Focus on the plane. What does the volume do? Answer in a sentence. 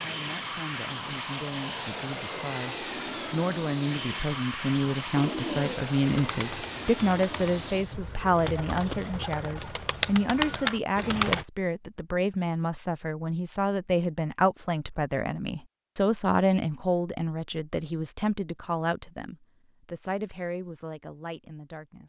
The loudness of the plane goes down.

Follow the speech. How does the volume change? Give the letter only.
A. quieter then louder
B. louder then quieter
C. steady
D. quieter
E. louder
B.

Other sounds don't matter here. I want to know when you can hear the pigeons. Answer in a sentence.
The pigeons can be heard from 5.1 to 11.4 s.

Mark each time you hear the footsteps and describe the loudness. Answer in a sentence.
You can't hear the footsteps here.